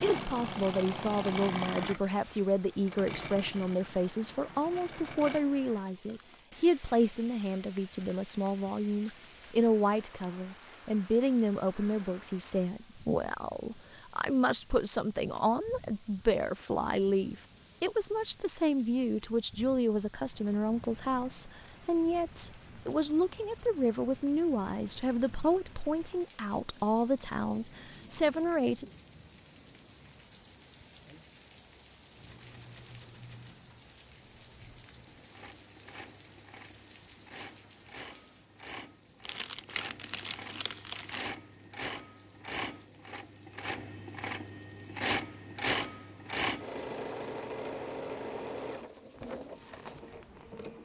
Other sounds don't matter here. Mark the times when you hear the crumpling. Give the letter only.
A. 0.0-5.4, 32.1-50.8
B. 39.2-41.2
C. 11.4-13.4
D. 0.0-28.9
B.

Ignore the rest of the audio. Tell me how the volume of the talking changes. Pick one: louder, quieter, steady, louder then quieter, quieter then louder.
steady.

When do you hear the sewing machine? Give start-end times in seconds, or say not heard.
0.0-5.4, 32.1-50.8.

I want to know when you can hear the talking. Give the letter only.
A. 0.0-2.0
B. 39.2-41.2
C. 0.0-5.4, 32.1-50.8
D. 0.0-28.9
D.